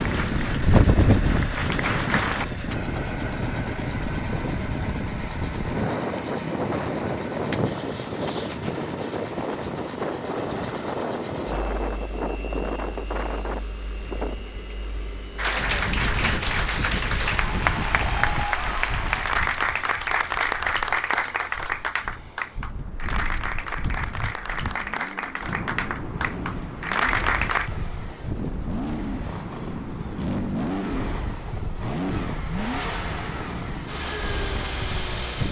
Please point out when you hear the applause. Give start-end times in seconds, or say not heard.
0.0-2.5, 15.3-27.7.